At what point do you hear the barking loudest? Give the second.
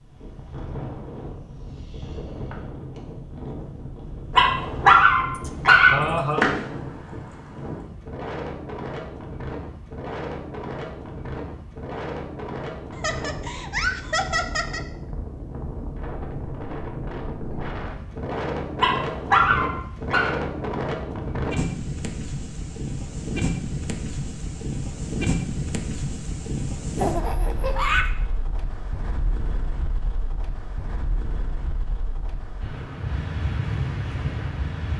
5 s.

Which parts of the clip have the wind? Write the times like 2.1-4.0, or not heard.
0.0-34.9.